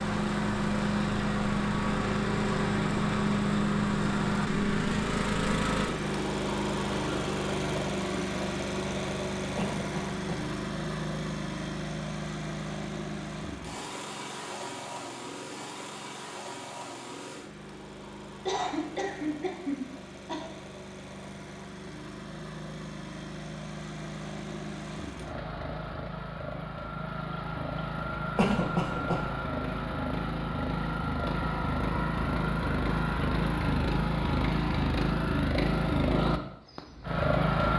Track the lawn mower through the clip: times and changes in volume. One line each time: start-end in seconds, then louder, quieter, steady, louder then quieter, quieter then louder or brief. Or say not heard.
0.0-37.7 quieter then louder.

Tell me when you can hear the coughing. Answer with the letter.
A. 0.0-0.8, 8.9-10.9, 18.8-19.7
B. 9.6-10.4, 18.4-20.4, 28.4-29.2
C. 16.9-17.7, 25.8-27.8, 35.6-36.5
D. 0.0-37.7
B.